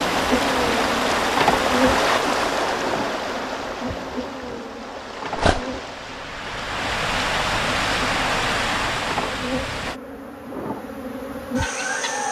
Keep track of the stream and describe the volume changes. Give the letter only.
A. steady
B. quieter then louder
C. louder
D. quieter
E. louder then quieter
B.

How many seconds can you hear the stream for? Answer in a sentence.
The stream can be heard for 10 seconds in total.